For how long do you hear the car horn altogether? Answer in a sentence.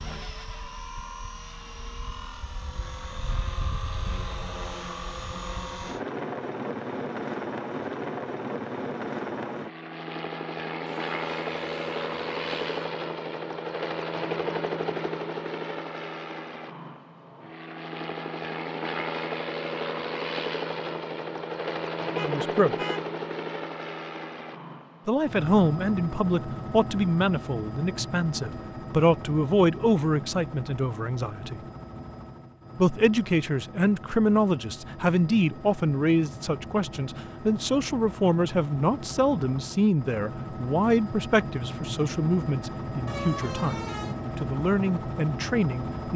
You can hear the car horn for 4 seconds altogether.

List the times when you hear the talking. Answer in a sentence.
The talking can be heard from 22.2 to 22.8 s, from 25.1 to 31.6 s and from 32.8 to 46.1 s.